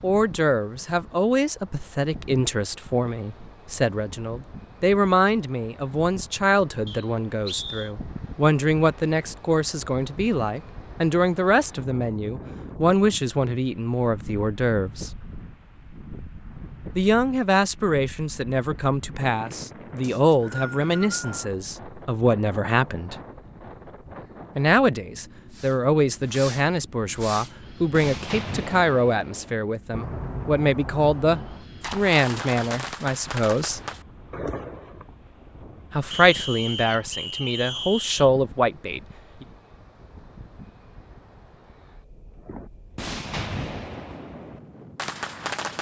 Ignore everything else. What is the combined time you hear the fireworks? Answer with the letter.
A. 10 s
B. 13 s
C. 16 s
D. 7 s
B.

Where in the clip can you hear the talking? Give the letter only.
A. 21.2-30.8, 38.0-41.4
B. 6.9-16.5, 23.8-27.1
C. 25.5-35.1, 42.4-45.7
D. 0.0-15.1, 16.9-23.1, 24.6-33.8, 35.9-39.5
D.